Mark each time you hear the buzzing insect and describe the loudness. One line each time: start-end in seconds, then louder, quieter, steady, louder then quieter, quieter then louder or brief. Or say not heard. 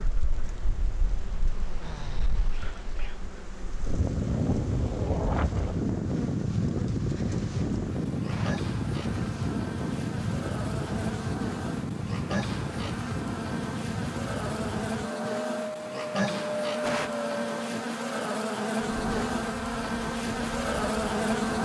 0.0-21.5 louder.